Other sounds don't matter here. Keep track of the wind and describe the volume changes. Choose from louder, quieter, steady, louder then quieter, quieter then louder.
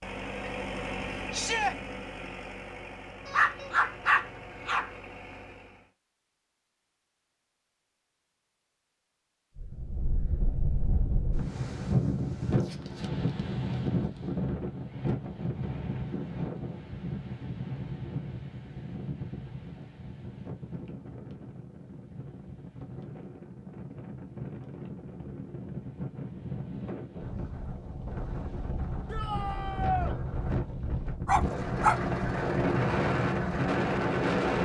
quieter then louder.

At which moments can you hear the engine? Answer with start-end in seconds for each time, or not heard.
0.0-5.9, 31.4-34.6.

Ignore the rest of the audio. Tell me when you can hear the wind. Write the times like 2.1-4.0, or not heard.
9.6-34.6.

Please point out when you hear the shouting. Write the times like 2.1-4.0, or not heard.
1.3-1.8, 29.1-30.1.